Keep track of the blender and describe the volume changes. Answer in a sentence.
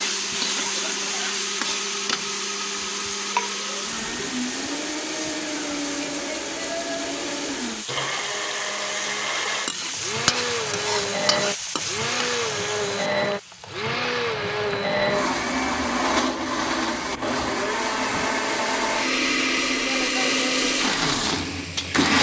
The volume of the blender goes up.